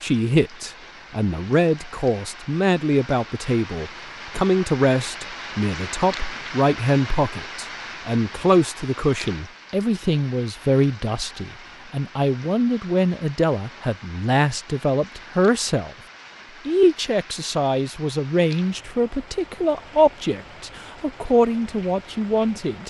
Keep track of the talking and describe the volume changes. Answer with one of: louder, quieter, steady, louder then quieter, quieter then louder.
steady.